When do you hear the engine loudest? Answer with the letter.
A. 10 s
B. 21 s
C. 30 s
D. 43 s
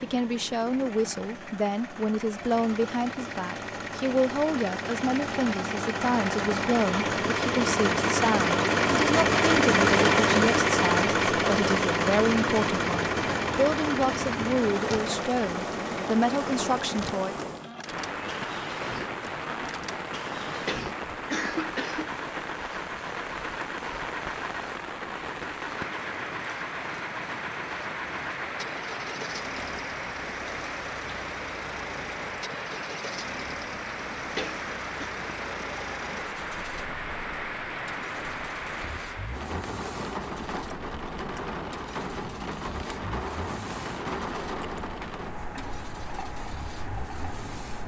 A.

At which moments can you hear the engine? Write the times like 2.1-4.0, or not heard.
0.0-47.8.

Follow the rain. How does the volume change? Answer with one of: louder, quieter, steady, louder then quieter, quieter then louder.
steady.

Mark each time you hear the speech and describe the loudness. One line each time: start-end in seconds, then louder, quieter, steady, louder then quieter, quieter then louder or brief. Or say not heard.
0.0-17.4 steady.